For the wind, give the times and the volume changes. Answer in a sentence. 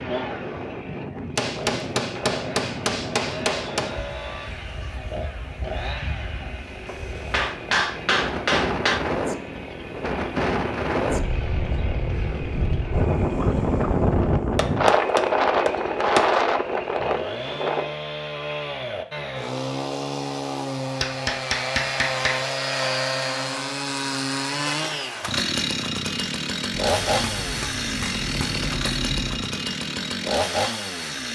The wind can be heard from 0.0 to 17.9 s, getting quieter then louder.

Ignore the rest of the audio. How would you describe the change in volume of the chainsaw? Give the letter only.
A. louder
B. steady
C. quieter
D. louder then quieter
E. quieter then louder
A.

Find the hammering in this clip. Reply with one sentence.
The hammering can be heard from 1.4 to 3.9 s, from 6.8 to 9.0 s, from 14.6 to 16.2 s, from 21.0 to 22.4 s and from 26.7 to 29.4 s.